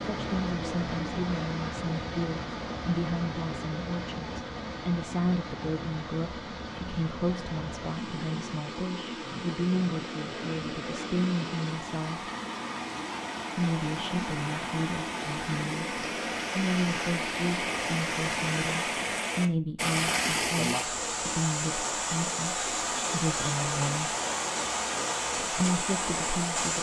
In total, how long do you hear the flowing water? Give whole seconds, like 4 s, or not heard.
27 s.